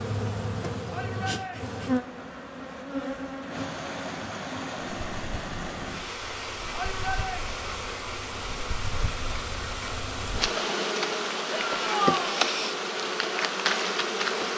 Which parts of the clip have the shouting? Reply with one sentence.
The shouting can be heard from 0.9 to 1.8 s, from 6.7 to 7.5 s and from 11.5 to 12.4 s.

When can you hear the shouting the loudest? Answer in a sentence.
The volume of the shouting peaks at 12 seconds.